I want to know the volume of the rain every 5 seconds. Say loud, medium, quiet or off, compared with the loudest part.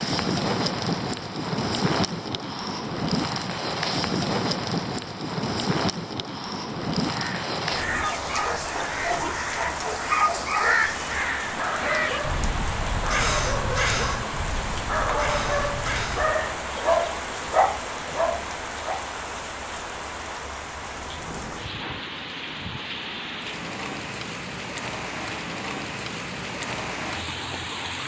loud, loud, medium, medium, medium, medium.